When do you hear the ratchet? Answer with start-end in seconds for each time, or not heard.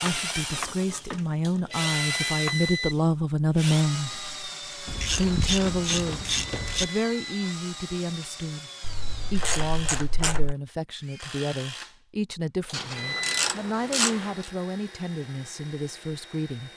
0.1-2.0, 4.8-6.8, 8.8-10.6, 12.7-14.4.